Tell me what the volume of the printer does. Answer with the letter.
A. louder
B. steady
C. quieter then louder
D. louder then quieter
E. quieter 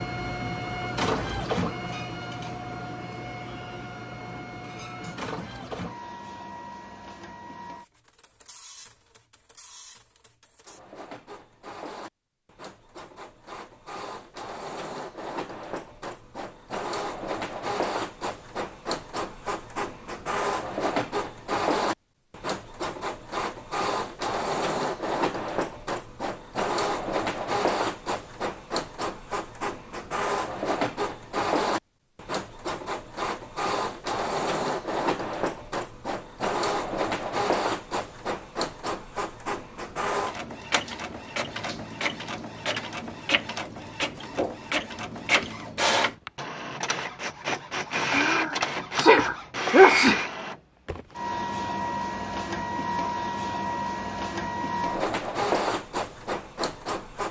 A.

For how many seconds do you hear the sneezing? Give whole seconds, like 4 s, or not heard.
2 s.